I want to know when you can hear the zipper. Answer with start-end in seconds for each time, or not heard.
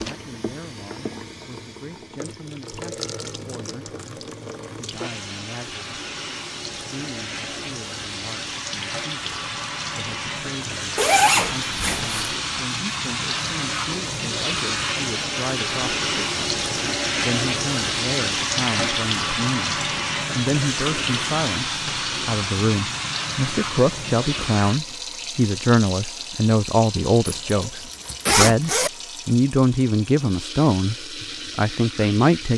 10.9-12.3, 27.2-28.9.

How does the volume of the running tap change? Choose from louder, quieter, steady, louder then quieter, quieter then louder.
louder then quieter.